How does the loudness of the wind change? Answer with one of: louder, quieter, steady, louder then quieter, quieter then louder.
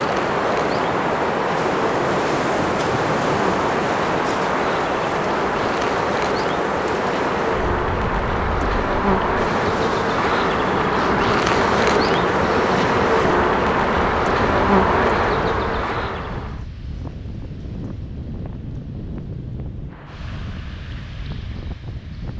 quieter.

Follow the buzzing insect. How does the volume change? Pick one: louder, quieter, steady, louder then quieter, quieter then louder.
louder.